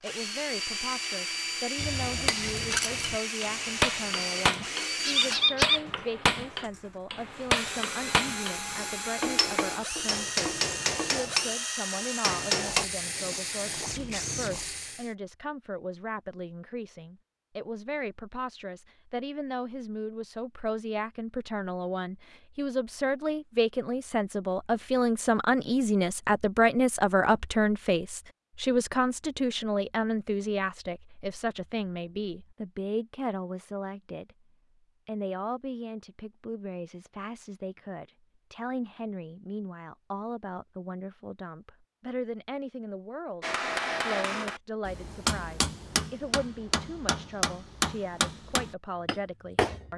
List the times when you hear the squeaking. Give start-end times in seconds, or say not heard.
5.0-5.8.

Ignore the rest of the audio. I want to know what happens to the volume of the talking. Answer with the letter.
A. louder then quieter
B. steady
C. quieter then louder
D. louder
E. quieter
A.